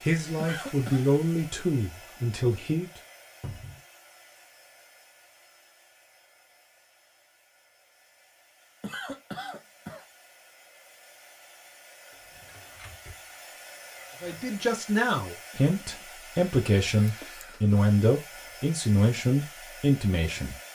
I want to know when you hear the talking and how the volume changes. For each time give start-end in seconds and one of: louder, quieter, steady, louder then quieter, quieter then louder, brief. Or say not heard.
0.0-2.9 brief
14.2-20.6 steady.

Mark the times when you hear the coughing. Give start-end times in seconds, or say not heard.
0.3-1.1, 8.8-10.1, 15.6-16.1.